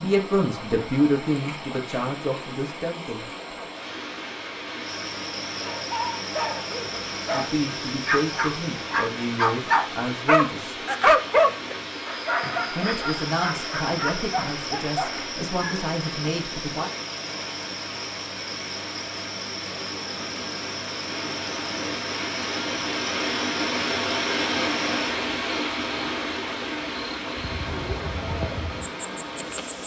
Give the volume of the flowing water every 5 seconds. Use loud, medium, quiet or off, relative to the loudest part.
medium, medium, medium, medium, loud, loud.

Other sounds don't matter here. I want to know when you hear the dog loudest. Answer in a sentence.
The volume of the dog peaks at 11 seconds.